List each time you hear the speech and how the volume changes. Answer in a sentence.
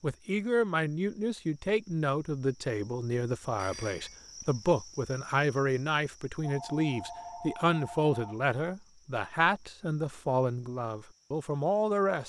The speech can be heard from 0.0 to 12.2 s, at a steady volume.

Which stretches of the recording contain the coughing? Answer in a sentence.
You can't hear the coughing here.